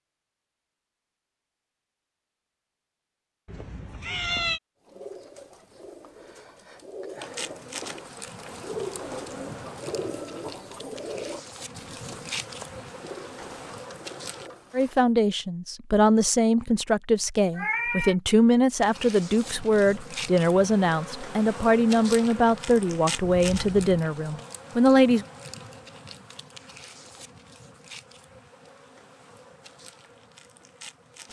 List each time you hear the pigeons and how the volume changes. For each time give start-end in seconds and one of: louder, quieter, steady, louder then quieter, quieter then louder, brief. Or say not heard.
4.8-15.1 louder then quieter.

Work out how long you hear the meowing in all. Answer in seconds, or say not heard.
3 s.